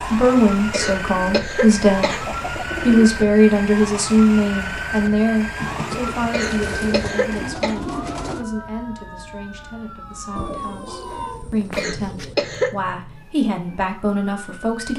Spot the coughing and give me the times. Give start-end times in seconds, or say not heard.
0.7-2.2, 6.3-7.8, 11.8-12.7.